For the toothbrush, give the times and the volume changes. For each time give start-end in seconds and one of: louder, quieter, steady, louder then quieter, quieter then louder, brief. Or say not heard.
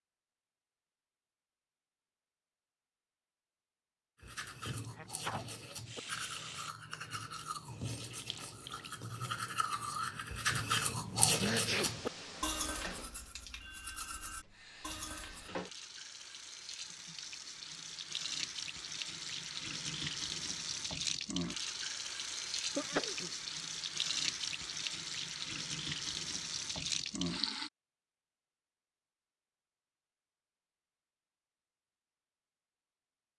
4.2-15.5 louder then quieter.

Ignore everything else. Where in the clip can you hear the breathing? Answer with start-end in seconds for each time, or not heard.
not heard.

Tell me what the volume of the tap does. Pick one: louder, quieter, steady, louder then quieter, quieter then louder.
louder.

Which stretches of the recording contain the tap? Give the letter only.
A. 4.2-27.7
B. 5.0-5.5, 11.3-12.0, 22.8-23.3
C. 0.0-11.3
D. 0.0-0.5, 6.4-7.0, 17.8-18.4
A.